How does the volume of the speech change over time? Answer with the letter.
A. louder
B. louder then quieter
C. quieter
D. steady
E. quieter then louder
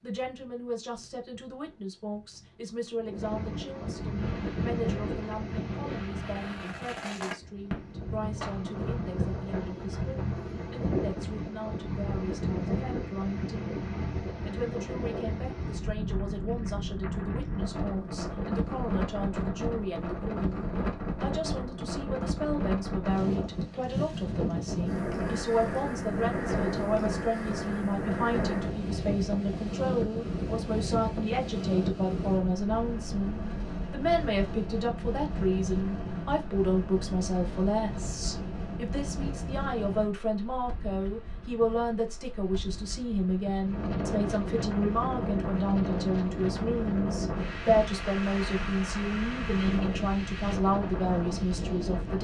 A.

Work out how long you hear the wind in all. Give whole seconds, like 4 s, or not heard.
52 s.